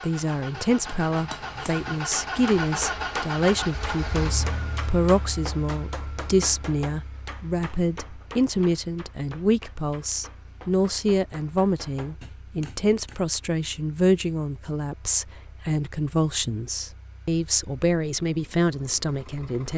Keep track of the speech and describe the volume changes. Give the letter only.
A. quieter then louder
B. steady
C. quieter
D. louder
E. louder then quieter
B.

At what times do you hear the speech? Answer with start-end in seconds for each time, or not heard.
0.0-19.7.